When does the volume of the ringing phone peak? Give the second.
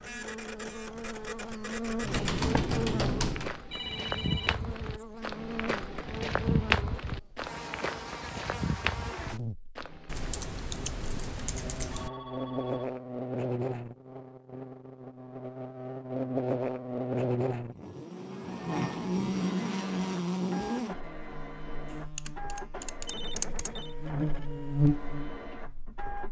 4 s.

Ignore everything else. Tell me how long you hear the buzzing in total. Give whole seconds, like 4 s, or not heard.
26 s.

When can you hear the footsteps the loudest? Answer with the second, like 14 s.
7 s.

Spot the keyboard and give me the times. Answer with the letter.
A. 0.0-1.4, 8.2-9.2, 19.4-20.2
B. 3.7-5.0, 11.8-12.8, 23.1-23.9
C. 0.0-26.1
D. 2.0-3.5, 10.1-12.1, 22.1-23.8
D.